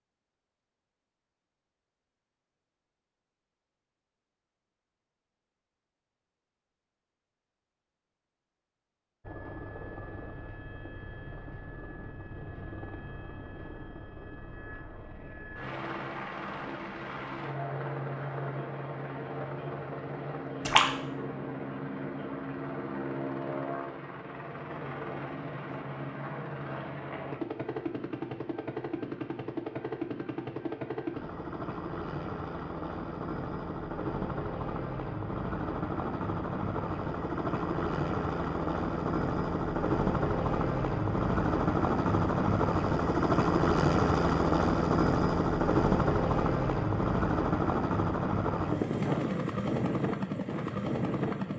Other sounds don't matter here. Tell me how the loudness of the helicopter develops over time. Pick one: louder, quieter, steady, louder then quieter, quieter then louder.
louder.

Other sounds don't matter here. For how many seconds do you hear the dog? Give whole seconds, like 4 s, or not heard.
not heard.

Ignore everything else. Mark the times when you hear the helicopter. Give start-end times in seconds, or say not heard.
9.2-51.5.